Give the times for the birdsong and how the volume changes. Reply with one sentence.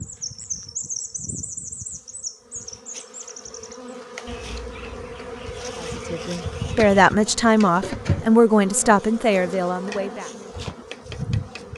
You can hear the birdsong from 0.0 to 6.8 s, getting quieter.